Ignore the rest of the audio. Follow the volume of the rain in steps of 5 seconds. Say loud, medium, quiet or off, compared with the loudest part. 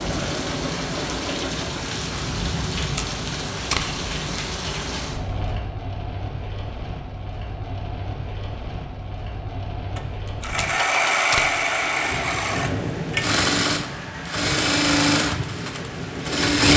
loud, medium, loud, loud.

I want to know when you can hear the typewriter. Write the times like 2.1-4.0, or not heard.
not heard.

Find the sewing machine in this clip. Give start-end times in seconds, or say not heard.
0.0-1.8, 9.9-16.7.